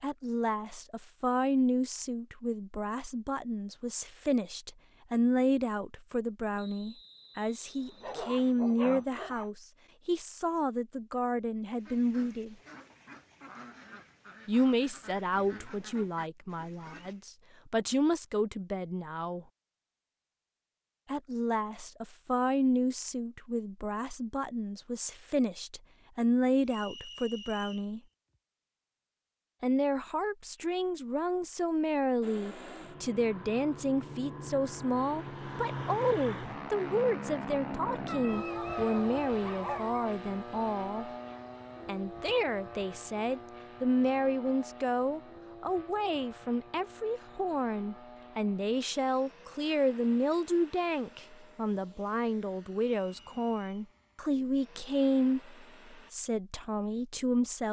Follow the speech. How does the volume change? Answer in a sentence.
The volume of the speech stays about the same.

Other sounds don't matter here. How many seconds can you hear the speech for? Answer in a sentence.
You can hear the speech for 52 seconds altogether.